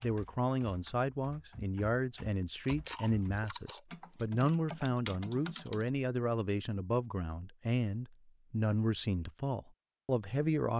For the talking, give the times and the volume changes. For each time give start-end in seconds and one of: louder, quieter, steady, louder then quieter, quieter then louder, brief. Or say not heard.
0.0-10.7 steady.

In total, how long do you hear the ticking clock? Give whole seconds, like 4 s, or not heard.
not heard.